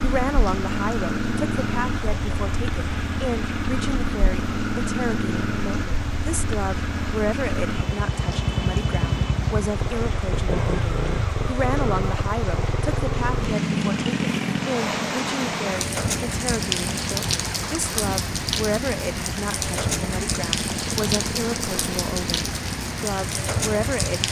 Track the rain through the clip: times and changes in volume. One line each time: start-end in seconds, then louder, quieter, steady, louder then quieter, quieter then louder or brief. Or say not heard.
0.0-24.2 louder.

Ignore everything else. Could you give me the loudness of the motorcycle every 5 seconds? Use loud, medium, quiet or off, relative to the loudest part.
loud, loud, loud, medium, medium.